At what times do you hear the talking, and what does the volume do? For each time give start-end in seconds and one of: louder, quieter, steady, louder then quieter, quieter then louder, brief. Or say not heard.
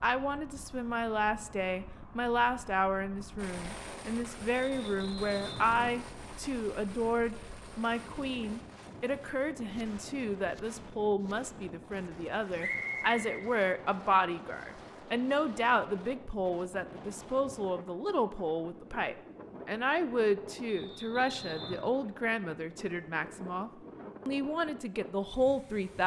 0.0-26.0 steady.